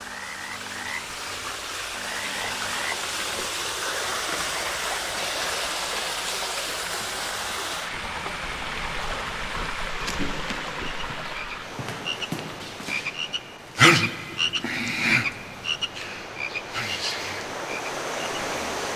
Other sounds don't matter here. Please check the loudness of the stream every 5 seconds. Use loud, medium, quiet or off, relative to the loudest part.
loud, loud, medium, loud.